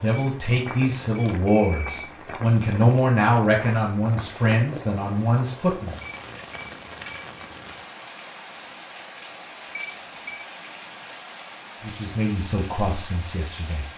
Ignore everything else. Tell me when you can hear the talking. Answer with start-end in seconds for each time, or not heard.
0.0-6.0, 11.8-13.8.